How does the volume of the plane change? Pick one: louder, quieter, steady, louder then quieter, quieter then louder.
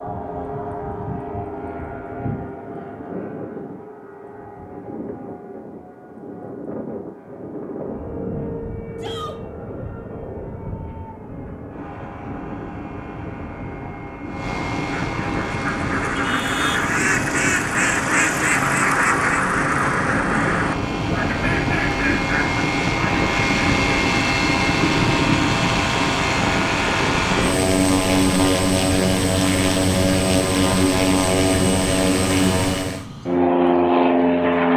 louder.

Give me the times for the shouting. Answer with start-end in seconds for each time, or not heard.
8.9-9.4.